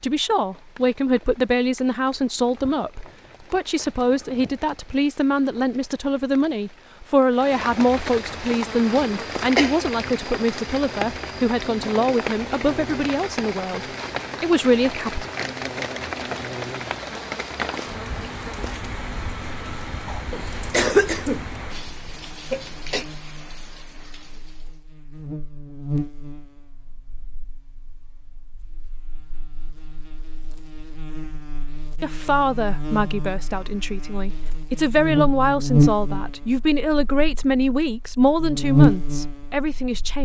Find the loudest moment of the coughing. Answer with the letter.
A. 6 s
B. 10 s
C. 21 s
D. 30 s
C.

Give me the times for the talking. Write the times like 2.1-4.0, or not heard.
0.0-15.2, 32.0-40.1.